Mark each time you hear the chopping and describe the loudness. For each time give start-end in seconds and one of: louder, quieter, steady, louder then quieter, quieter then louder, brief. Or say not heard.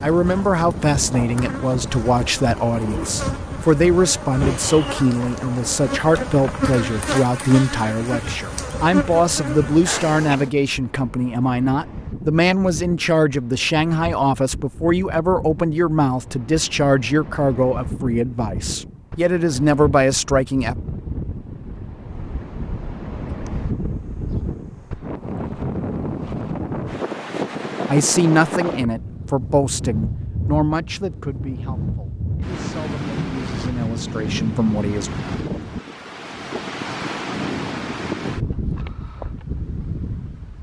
not heard.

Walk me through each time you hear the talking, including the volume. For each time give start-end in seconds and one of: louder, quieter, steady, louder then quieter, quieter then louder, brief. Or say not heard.
0.0-20.8 steady
27.9-35.1 quieter then louder.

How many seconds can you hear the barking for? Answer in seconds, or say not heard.
not heard.